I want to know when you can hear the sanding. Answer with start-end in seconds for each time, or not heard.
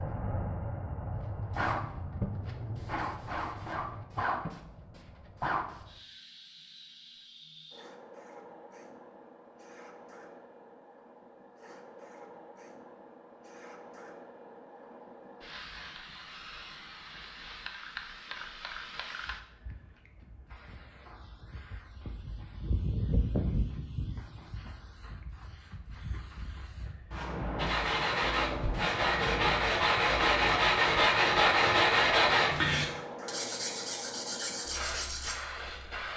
27.6-35.4.